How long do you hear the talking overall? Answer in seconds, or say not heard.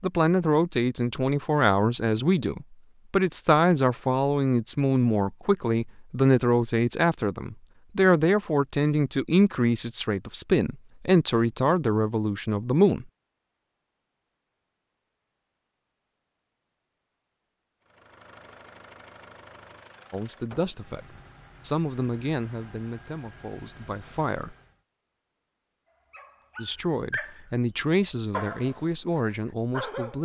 21 s.